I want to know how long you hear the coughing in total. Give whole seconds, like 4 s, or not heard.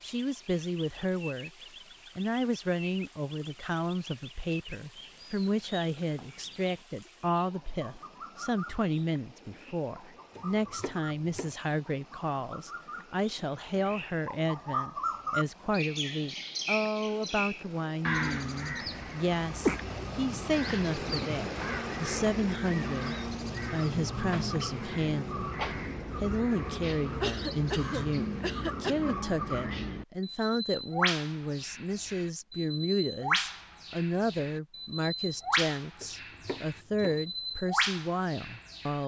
2 s.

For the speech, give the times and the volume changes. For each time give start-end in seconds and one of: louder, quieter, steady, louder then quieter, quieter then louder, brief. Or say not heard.
0.0-1.5 brief
2.1-39.0 steady.